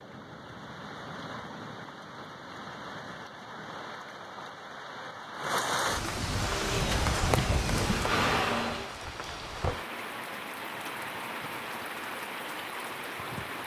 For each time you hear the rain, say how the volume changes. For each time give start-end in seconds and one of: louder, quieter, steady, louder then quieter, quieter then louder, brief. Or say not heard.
0.0-13.6 louder then quieter.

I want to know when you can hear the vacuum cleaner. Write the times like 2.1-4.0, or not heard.
6.3-8.9.